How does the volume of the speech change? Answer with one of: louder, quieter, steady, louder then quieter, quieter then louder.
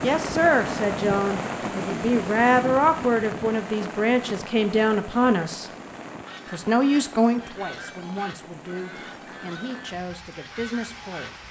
quieter.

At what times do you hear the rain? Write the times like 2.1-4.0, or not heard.
0.0-11.4.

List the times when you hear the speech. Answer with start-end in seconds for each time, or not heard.
0.0-5.7, 6.5-11.3.